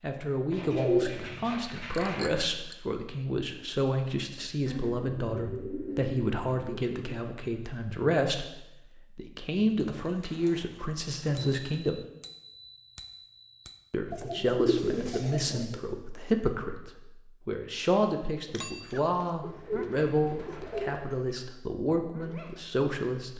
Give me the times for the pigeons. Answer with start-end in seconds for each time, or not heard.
0.5-2.4, 4.7-7.2, 9.6-11.7, 14.1-15.8, 19.4-21.1.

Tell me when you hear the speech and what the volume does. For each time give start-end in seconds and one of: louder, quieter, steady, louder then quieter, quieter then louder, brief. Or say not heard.
0.0-12.0 steady
13.9-23.3 steady.